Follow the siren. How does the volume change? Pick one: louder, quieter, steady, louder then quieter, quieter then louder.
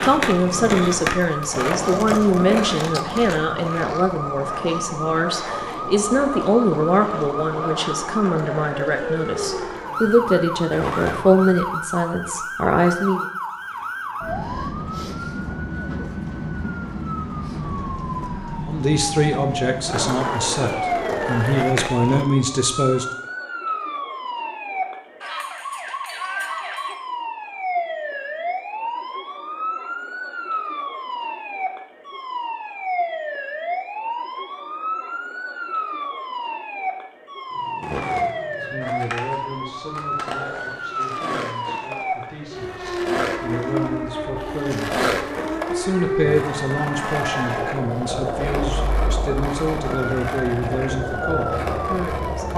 steady.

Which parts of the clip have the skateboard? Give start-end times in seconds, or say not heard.
0.0-11.7, 19.9-22.2, 37.5-52.5.